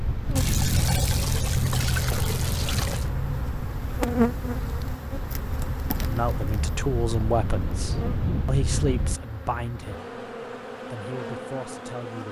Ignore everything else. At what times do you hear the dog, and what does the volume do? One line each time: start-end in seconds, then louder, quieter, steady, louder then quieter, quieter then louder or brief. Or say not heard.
not heard.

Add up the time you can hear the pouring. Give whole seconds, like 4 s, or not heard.
3 s.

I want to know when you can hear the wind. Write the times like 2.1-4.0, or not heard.
0.0-9.2.